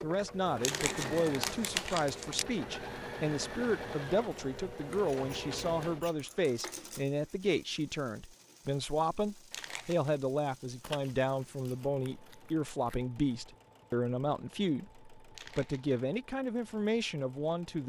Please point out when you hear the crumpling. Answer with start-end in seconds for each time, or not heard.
0.6-2.5, 9.5-10.2, 15.3-16.0.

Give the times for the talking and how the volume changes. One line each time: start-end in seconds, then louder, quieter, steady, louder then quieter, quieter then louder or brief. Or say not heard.
0.0-17.8 steady.